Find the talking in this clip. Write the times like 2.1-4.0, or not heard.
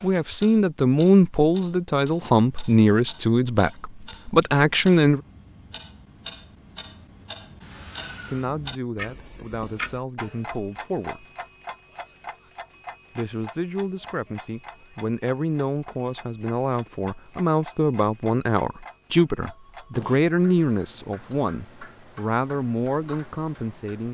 0.0-5.2, 8.2-11.2, 13.2-24.1.